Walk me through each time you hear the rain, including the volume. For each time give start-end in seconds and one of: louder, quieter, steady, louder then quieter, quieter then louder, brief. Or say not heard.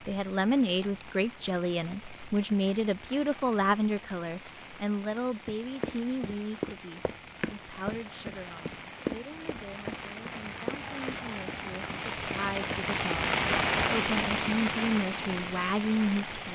0.0-16.5 louder.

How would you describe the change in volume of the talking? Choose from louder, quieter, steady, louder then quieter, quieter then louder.
quieter then louder.